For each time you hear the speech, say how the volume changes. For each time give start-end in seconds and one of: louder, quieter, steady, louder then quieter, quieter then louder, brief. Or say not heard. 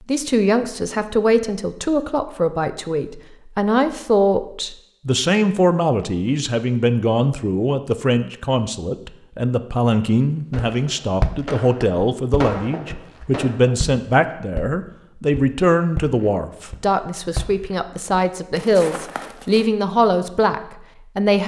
0.1-21.4 steady.